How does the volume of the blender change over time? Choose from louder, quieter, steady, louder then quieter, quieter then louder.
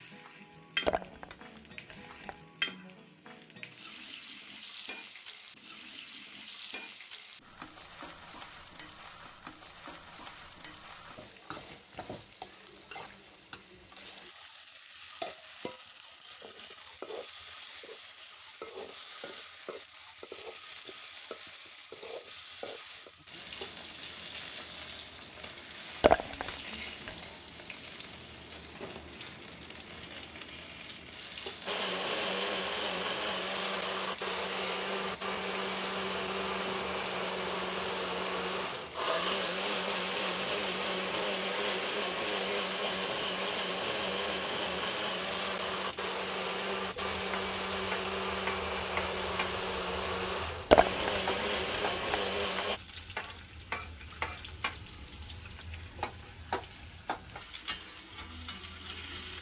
steady.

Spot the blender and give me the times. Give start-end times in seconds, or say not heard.
31.6-52.8.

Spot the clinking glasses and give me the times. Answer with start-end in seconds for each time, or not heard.
0.8-2.4, 26.0-27.1, 50.7-52.2.